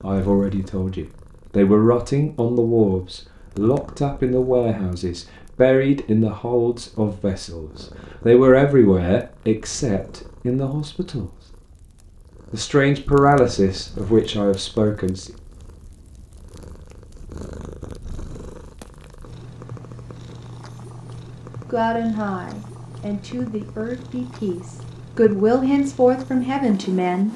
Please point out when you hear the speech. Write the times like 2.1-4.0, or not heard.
0.0-11.3, 12.5-15.3, 21.7-27.3.